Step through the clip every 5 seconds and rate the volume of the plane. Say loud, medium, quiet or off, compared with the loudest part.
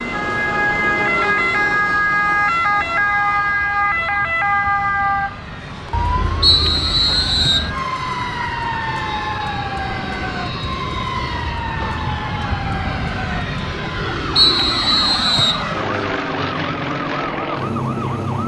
quiet, medium, loud, loud.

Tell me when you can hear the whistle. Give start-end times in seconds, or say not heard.
6.4-7.7, 14.3-15.7.